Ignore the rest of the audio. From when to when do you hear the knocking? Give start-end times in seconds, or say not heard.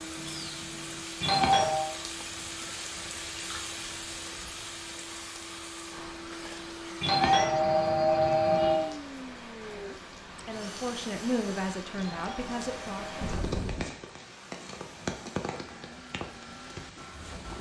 not heard.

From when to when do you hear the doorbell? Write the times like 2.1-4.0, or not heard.
1.2-1.9, 7.0-8.9, 11.9-13.3.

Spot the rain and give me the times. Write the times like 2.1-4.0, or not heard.
0.0-17.5.